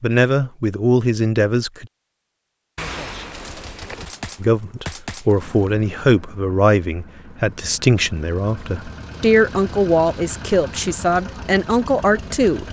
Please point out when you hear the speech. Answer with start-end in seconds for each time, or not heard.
0.0-1.9, 4.4-12.6.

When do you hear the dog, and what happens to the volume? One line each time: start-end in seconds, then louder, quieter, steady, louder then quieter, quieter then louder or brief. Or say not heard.
not heard.